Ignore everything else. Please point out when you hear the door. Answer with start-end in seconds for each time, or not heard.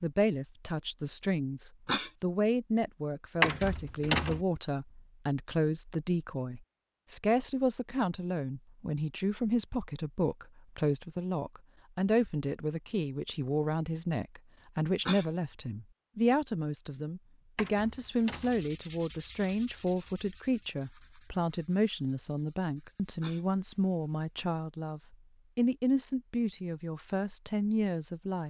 3.4-4.5, 17.6-18.6.